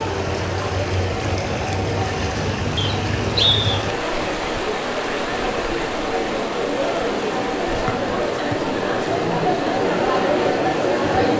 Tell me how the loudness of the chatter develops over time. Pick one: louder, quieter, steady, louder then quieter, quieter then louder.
louder.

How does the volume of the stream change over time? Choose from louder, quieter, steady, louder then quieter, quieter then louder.
quieter.